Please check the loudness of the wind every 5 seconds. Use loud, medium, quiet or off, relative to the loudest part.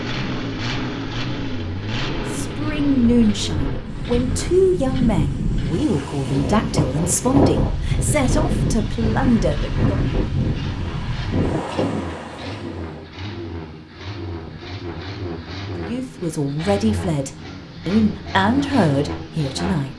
medium, loud, loud, off.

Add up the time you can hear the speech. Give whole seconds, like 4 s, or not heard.
12 s.